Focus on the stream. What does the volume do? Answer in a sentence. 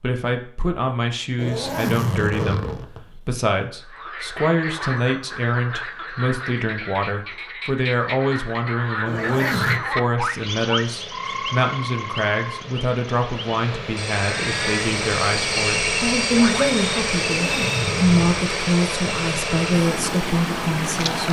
The loudness of the stream goes up.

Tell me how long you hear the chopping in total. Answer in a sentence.
The chopping can't be heard in this clip.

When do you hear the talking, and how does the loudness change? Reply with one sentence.
The talking can be heard from 0.0 to 21.2 s, at a steady volume.